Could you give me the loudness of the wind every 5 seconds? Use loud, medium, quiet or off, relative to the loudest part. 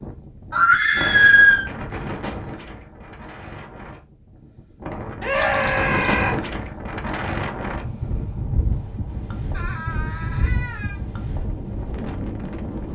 medium, loud, loud.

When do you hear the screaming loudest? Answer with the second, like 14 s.
1 s.